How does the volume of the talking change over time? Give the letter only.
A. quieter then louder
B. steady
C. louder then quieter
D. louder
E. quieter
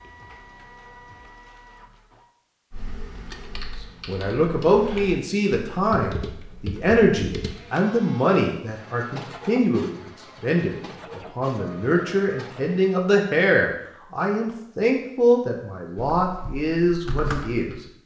B.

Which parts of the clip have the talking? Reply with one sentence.
The talking can be heard from 4.0 to 17.8 s.